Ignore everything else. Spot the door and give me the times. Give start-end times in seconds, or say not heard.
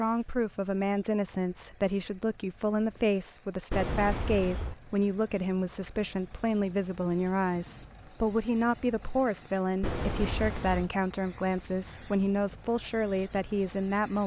3.7-4.8, 9.8-10.9.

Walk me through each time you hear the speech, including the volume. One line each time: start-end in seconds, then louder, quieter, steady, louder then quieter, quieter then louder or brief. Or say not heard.
0.0-14.2 steady.